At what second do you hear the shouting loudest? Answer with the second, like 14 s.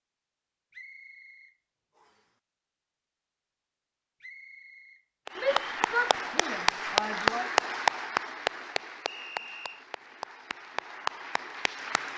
6 s.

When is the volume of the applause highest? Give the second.
7 s.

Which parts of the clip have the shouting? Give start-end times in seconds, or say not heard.
5.3-7.5.